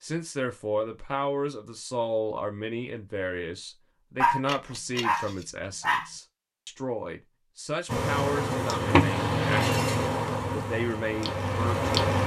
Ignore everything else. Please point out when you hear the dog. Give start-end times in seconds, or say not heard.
4.2-6.1.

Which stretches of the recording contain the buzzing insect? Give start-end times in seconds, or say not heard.
7.8-12.2.